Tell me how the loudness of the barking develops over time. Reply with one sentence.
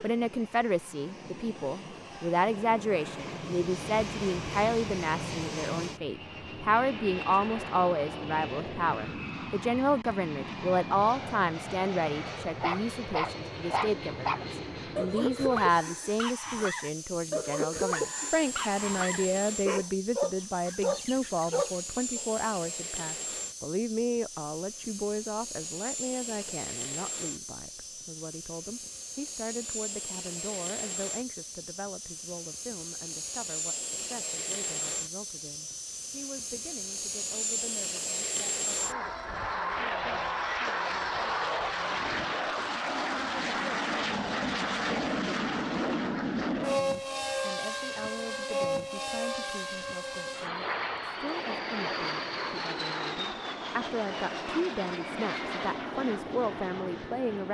The volume of the barking stays about the same.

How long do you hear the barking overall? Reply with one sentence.
You can hear the barking for 10 seconds altogether.